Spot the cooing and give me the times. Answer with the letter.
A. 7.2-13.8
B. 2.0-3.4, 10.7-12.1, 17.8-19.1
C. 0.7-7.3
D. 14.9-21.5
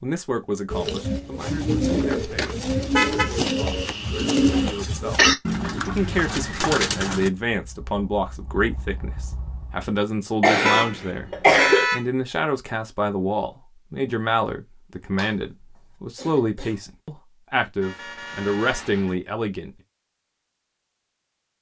C.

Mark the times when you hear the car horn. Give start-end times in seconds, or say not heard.
2.0-3.4, 10.7-12.1, 17.8-19.1.